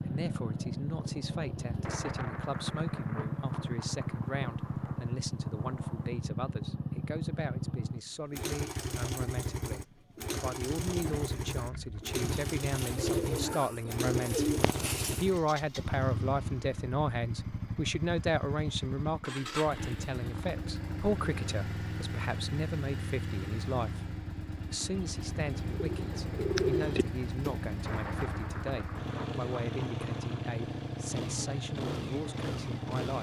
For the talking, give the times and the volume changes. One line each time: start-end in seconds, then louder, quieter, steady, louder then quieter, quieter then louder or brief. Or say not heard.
0.1-33.1 louder then quieter.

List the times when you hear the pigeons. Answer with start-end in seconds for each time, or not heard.
10.8-15.3, 24.6-27.6.